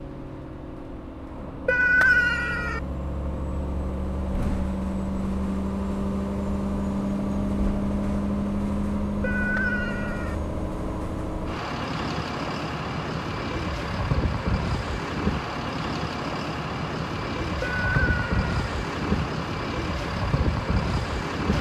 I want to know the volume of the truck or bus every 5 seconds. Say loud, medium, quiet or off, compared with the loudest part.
medium, loud, loud, loud, loud.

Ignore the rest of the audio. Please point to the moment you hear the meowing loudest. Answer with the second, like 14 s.
2 s.